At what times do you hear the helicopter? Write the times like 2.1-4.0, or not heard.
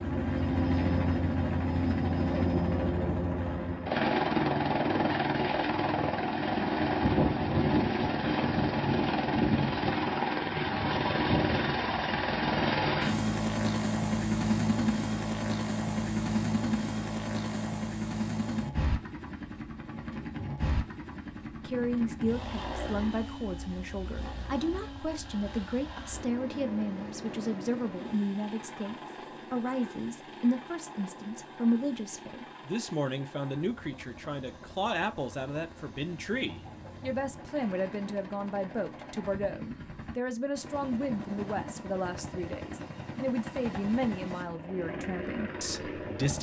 0.0-46.3.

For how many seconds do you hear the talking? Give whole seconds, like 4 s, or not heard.
25 s.